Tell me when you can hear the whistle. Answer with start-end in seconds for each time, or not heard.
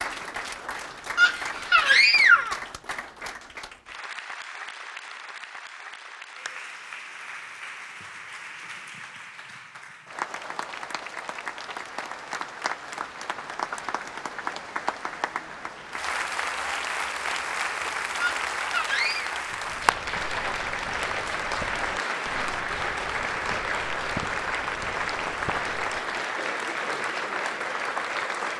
not heard.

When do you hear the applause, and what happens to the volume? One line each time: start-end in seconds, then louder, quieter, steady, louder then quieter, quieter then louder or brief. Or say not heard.
0.0-28.5 louder.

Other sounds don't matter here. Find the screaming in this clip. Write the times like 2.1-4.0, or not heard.
1.1-2.6, 18.1-19.3.